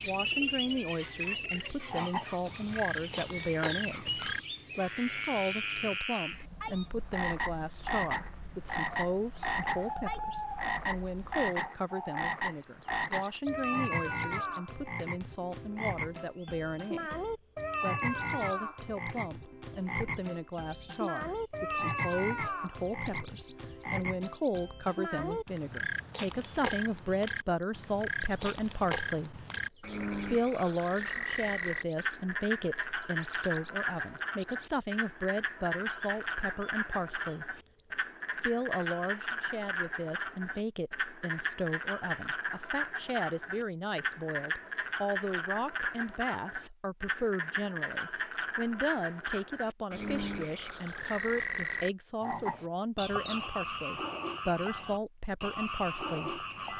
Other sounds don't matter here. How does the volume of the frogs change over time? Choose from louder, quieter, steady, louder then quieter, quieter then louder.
steady.